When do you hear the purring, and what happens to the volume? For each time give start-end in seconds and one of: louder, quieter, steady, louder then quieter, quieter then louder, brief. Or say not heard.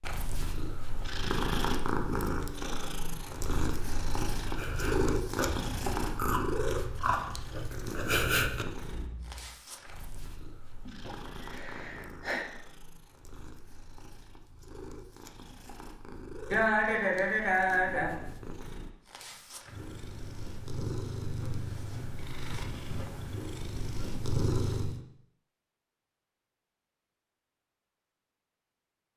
0.0-25.0 quieter then louder.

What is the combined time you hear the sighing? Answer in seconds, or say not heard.
3 s.